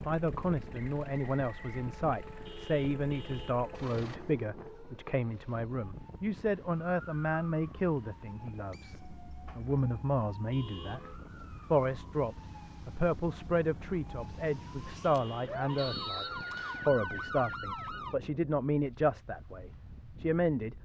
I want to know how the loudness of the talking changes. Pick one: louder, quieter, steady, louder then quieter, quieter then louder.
steady.